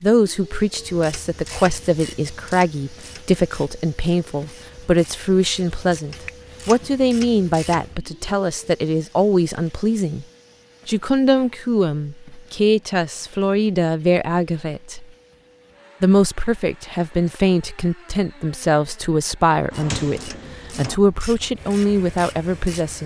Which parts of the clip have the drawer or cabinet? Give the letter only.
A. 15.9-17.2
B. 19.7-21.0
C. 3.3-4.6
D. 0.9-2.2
B.